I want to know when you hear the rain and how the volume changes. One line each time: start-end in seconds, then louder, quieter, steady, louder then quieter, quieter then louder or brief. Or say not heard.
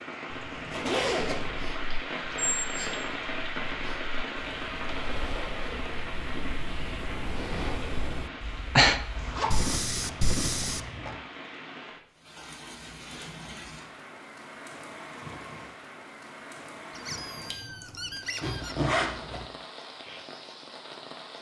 0.0-21.3 quieter.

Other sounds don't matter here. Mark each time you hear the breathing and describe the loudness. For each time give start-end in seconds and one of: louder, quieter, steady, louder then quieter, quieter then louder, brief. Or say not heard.
1.4-10.8 louder.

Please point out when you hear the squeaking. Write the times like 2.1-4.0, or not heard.
2.4-3.1, 16.9-18.8.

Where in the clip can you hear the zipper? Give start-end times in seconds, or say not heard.
0.3-1.6, 9.2-11.2, 18.4-19.4.